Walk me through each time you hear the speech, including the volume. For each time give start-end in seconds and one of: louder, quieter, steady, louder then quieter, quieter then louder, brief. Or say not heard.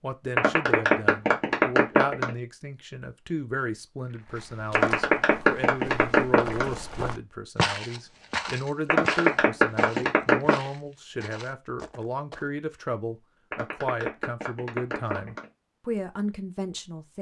0.0-17.1 steady.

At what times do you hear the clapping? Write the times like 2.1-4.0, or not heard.
0.3-2.3, 4.7-6.7, 8.8-10.7, 13.5-15.4.